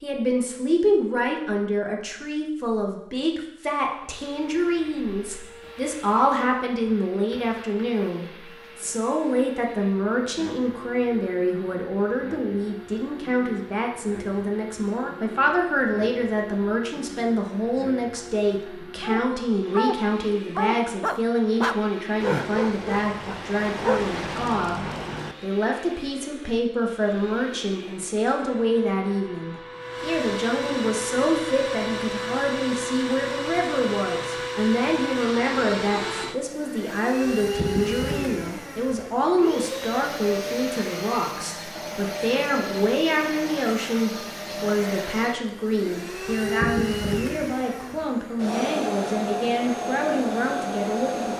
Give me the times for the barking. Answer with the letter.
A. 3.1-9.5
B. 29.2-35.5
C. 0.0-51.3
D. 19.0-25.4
D.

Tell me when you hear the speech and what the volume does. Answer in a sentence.
You can hear the speech from 0.0 to 51.3 s, at a steady volume.